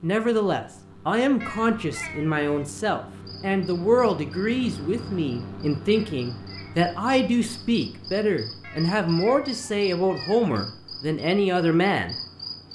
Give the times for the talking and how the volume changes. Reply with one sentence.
You can hear the talking from 0.0 to 12.2 s, at a steady volume.